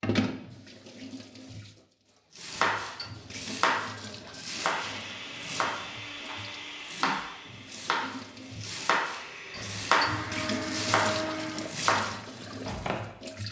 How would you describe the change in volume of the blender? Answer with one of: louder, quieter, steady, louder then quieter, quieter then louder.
quieter then louder.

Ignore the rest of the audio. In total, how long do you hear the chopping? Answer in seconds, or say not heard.
11 s.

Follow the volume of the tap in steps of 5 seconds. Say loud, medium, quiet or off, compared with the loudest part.
loud, medium, loud.